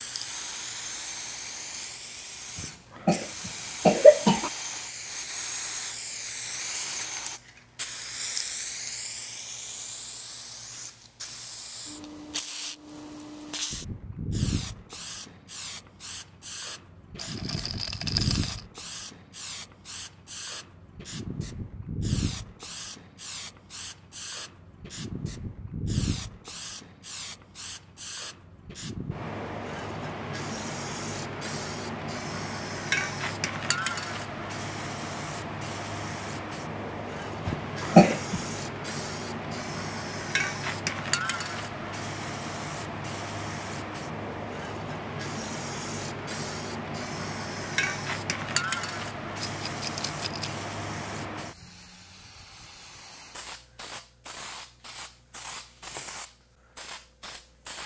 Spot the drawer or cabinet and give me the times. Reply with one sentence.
You can't hear the drawer or cabinet here.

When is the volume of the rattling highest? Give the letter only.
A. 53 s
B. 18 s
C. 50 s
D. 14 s
B.